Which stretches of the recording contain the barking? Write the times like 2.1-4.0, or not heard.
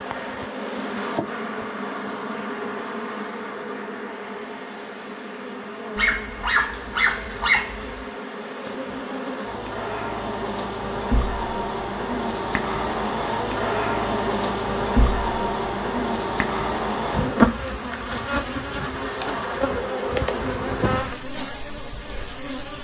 6.0-8.1.